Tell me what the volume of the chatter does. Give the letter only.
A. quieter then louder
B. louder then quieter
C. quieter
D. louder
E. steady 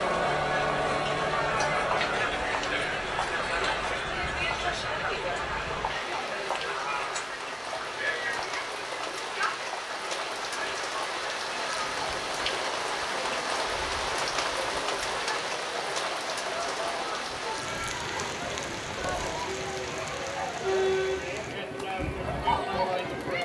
A.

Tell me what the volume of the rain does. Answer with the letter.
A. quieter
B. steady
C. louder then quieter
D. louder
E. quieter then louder
C.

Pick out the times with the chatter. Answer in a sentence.
You can hear the chatter from 0.0 to 23.4 s.